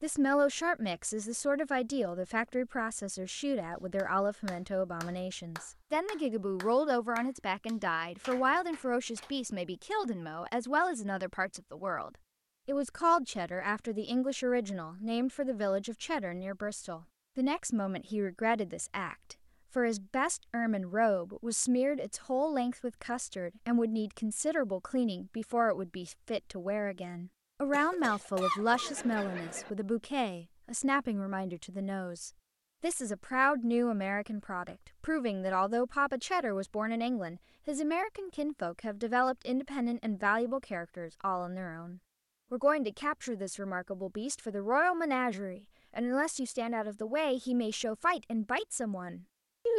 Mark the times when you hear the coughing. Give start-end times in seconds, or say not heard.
27.7-29.7.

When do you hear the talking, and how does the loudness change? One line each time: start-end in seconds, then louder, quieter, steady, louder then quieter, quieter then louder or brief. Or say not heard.
0.0-49.7 steady.